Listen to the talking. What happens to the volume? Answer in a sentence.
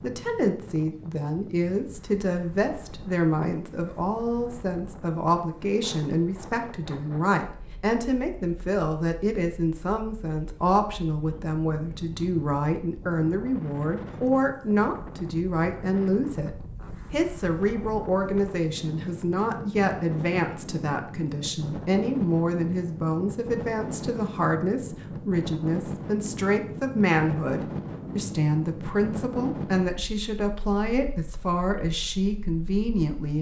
The volume of the talking stays about the same.